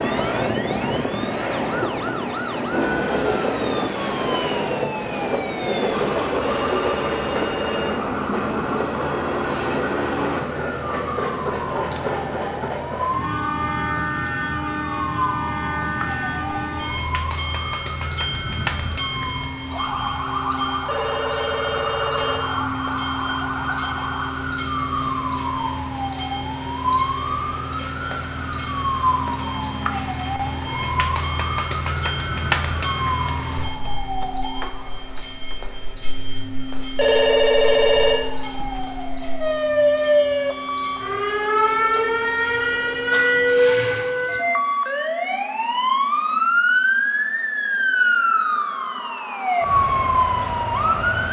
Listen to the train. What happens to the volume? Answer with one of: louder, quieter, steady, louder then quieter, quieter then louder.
quieter.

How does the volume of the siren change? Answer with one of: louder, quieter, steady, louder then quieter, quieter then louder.
louder.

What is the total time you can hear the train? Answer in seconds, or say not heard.
44 s.